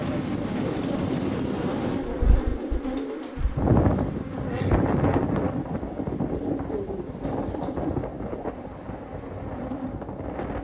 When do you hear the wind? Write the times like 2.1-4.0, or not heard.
0.0-10.5.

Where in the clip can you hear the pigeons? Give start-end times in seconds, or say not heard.
0.6-3.4, 6.3-8.1.